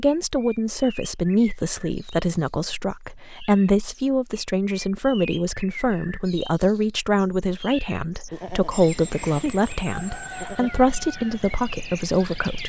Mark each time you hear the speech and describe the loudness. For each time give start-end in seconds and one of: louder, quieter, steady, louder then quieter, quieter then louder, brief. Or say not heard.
0.0-12.6 steady.